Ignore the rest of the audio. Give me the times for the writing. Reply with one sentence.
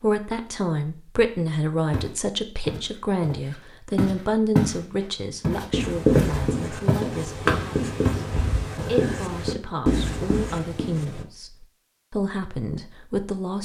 The writing can be heard from 5.7 to 11.2 s.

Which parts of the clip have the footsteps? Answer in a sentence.
You can hear the footsteps from 1.9 to 4.8 s and from 5.4 to 8.9 s.